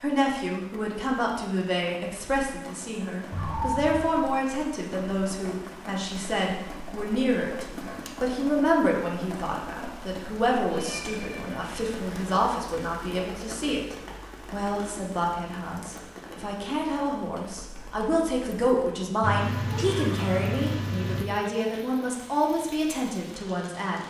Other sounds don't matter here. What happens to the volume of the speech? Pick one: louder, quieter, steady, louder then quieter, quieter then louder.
steady.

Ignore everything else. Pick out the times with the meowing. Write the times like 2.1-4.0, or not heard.
3.3-4.1, 10.7-11.6, 19.2-21.2.